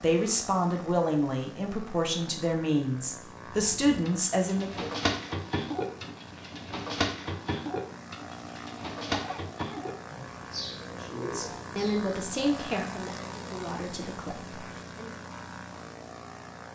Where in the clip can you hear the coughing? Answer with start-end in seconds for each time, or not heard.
9.1-9.8.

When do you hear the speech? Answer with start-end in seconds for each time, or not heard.
0.0-4.9, 11.0-15.2.